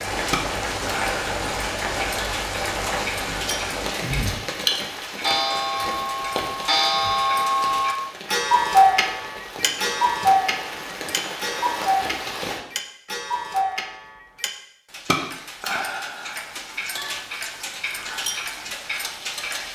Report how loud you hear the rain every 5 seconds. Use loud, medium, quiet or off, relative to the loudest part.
loud, medium, medium, off.